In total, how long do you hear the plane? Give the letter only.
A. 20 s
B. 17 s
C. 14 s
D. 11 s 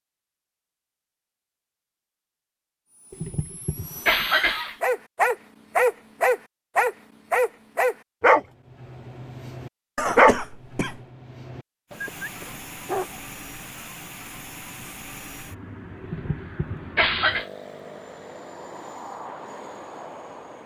D.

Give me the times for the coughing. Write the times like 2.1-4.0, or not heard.
3.1-4.8, 9.9-11.0, 16.0-17.4.